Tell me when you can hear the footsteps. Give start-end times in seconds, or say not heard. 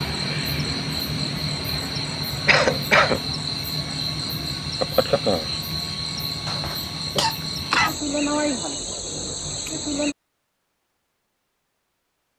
not heard.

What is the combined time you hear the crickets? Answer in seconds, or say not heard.
10 s.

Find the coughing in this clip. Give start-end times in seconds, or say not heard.
2.5-3.2, 6.5-8.0.